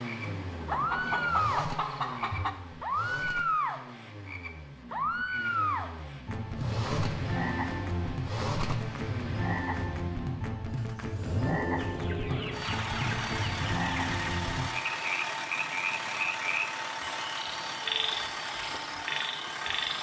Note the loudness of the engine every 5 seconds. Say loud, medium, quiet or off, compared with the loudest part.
medium, loud, loud, loud.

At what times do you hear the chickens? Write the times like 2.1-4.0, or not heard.
0.7-2.5, 11.8-14.4.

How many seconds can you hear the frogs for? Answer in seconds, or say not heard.
20 s.